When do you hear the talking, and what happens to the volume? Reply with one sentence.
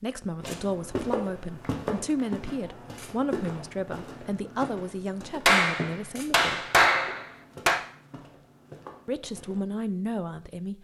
The talking can be heard from 0.0 to 6.7 s, at a steady volume; and briefly from 9.1 to 10.7 s.